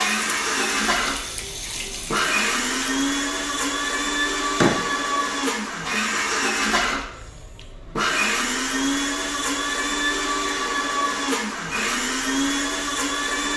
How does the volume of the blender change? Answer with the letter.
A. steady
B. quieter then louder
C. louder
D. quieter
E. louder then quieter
A.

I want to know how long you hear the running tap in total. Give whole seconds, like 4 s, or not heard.
3 s.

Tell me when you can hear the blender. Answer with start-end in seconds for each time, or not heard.
0.0-13.5.